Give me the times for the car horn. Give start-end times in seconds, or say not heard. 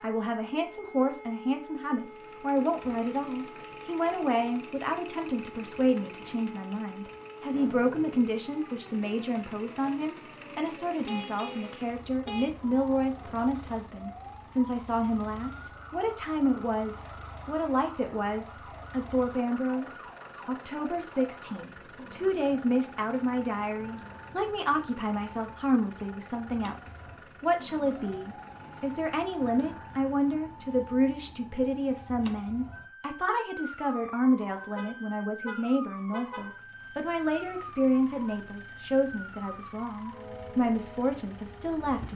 11.1-12.6, 34.8-36.6.